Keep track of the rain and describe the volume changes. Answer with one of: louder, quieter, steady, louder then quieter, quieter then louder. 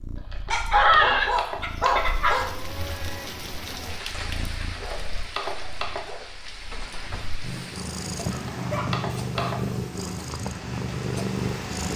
steady.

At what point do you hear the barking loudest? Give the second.
1 s.